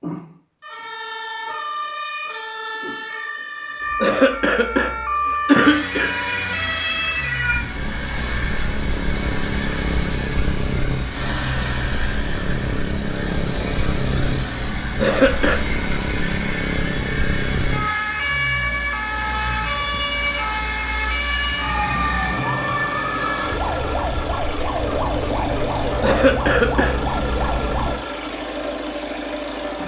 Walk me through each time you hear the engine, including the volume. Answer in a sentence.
The engine can be heard from 5.6 to 29.8 s, at a steady volume.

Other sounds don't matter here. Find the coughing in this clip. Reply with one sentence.
You can hear the coughing from 4.0 to 6.1 s, from 15.0 to 15.6 s and from 26.0 to 26.9 s.